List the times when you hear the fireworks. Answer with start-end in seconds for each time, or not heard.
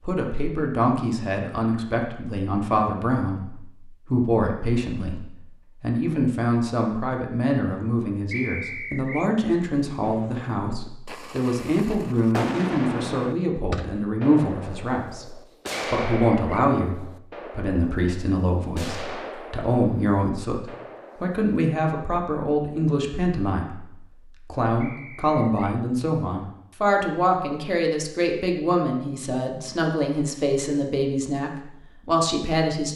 10.0-21.4.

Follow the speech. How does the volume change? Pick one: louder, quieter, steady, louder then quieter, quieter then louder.
steady.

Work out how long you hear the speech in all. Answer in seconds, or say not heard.
33 s.